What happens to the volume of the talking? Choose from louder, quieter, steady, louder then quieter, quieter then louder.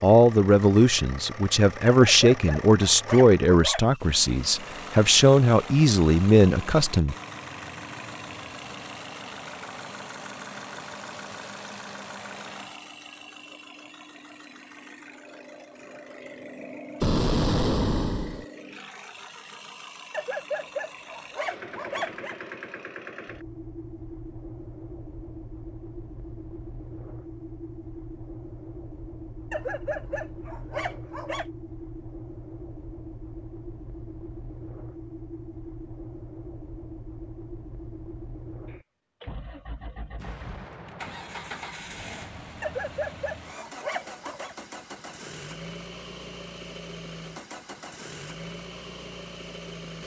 steady.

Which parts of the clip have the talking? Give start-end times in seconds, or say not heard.
0.0-7.2.